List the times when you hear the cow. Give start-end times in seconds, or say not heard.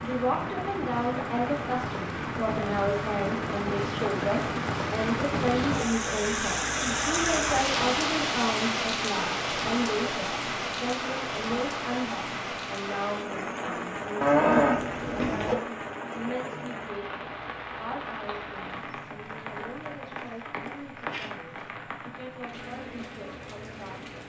14.2-15.6.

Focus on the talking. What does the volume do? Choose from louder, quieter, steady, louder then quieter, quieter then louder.
quieter.